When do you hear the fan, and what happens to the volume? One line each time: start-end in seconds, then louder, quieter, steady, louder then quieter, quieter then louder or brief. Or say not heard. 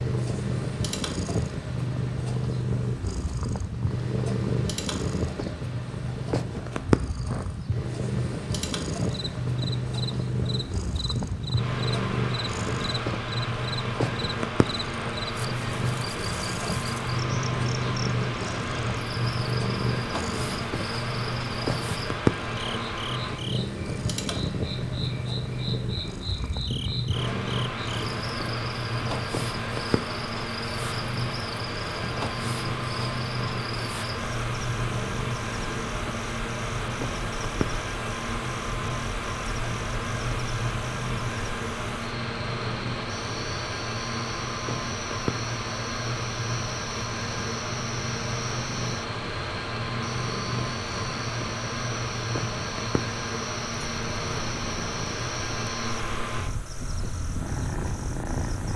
0.0-58.7 steady.